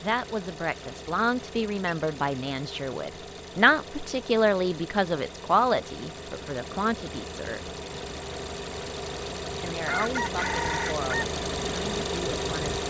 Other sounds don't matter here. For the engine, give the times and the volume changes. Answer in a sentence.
The engine can be heard from 0.0 to 12.8 s, getting louder.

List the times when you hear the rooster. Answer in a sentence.
The rooster can be heard from 9.8 to 11.2 s.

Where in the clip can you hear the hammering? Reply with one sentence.
The hammering can't be heard in this clip.